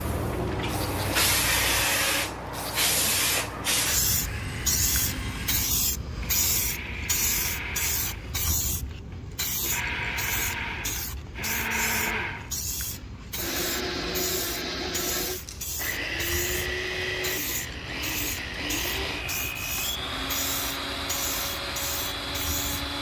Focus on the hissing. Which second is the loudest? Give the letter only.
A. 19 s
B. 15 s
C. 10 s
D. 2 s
D.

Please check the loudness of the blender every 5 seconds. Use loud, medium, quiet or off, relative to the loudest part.
medium, medium, loud, loud, loud.